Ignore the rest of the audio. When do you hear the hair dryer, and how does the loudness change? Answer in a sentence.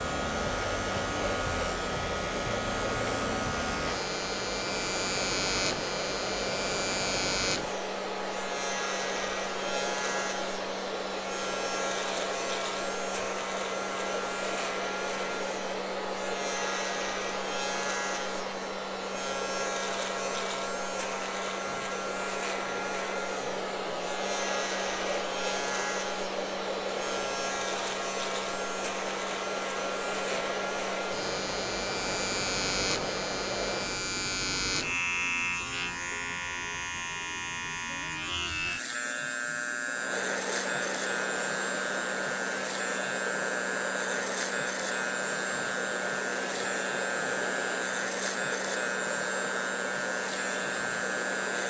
You can hear the hair dryer from 0.0 to 34.0 s, at a steady volume; and from 39.9 to 51.6 s, at a steady volume.